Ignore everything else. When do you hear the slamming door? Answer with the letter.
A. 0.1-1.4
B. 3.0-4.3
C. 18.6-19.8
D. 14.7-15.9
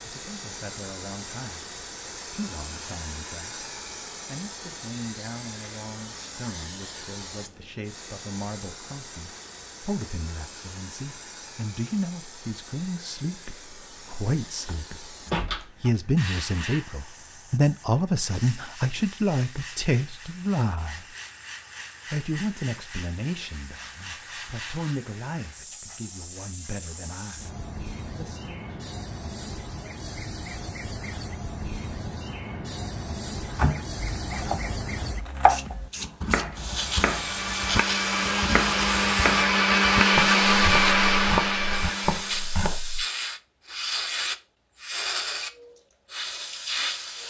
D.